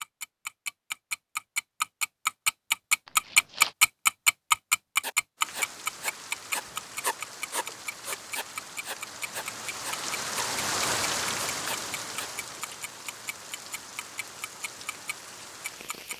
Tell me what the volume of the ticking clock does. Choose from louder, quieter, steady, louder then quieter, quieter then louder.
quieter.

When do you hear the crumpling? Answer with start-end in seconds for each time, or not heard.
3.0-3.8.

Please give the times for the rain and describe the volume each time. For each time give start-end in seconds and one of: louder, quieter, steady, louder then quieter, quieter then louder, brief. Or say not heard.
5.3-16.1 louder then quieter.